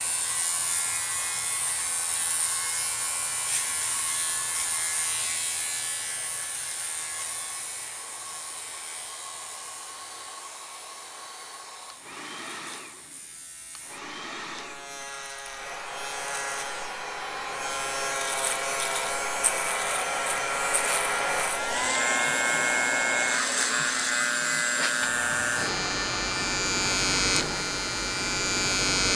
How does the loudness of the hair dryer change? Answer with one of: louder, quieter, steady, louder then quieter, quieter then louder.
louder.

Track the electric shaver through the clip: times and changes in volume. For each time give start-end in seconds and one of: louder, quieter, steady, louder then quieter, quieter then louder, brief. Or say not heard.
0.0-29.1 quieter then louder.